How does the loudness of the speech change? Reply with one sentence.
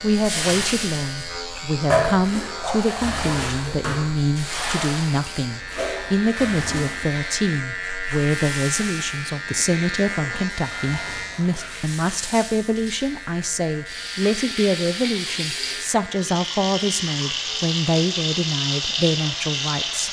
The volume of the speech stays about the same.